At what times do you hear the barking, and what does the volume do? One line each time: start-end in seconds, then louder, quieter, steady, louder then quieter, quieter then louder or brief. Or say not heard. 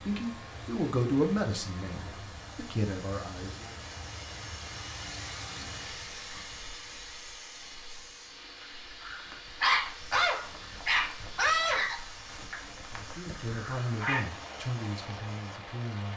9.0-14.2 quieter.